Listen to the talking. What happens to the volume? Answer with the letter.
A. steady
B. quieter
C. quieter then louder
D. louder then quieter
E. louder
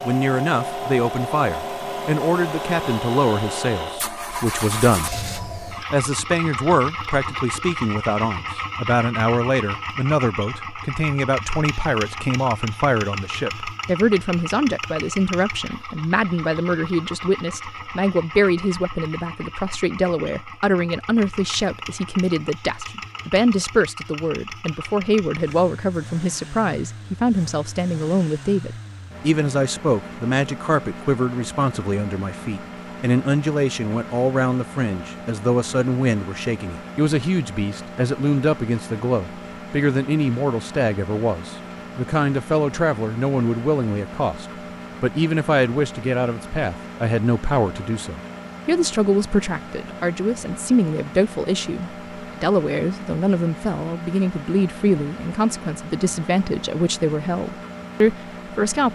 A.